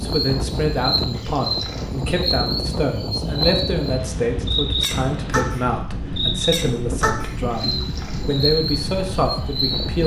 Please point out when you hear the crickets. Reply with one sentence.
You can hear the crickets from 0.0 to 10.0 s.